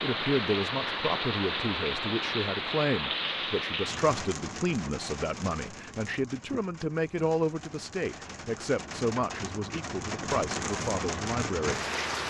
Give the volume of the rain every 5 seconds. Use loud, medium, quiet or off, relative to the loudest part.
loud, medium, loud.